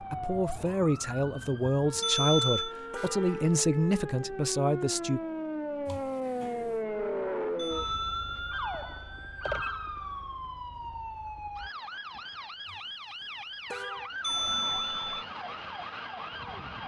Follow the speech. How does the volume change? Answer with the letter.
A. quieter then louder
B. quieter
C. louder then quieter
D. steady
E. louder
D.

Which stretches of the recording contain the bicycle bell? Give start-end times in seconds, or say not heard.
2.0-2.8, 7.5-9.4, 14.2-15.2.